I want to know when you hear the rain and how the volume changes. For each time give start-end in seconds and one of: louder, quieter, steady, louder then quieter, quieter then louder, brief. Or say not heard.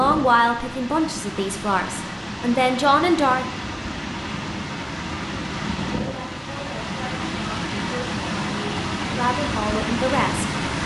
0.0-10.8 louder.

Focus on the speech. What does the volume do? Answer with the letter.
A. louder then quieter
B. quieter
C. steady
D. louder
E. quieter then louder
E.